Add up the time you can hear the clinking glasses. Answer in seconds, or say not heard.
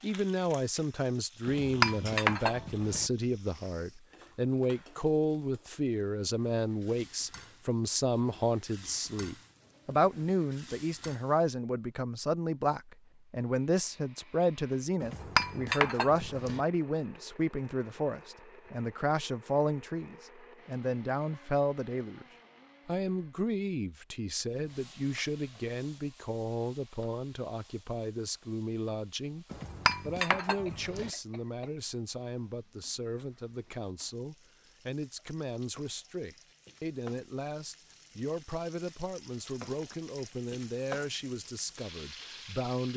5 s.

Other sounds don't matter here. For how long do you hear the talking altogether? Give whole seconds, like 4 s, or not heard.
42 s.